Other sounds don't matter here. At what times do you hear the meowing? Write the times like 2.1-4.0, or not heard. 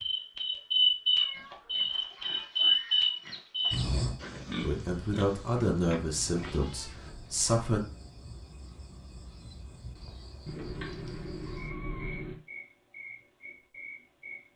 1.1-1.9, 6.2-7.5, 10.4-12.4.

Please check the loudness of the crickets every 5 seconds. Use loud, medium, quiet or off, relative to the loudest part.
loud, quiet, quiet.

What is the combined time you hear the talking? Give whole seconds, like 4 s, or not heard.
3 s.